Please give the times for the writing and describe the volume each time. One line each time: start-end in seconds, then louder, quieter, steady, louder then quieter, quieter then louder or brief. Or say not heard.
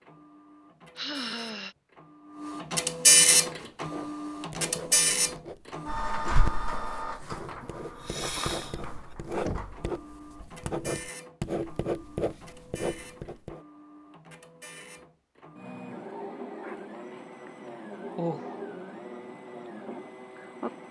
3.2-13.6 louder.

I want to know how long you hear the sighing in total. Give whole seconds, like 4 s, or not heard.
3 s.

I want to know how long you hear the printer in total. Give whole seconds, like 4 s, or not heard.
21 s.